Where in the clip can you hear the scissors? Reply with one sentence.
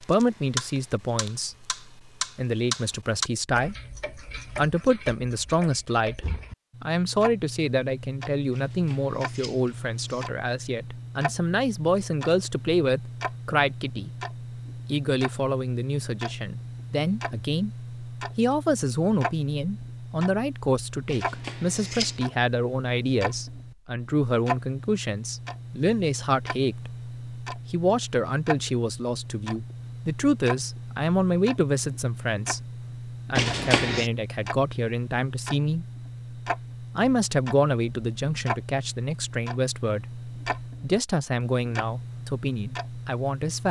The scissors can be heard from 8.5 to 10.3 s, from 21.1 to 22.2 s and from 33.4 to 34.1 s.